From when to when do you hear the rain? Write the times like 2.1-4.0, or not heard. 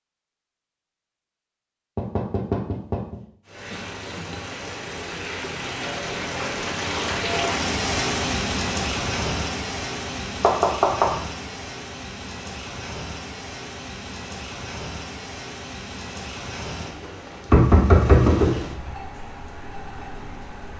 3.5-20.7.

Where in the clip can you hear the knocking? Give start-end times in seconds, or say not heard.
1.9-3.2, 10.4-11.1, 17.5-19.0.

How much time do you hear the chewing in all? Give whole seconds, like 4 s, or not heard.
not heard.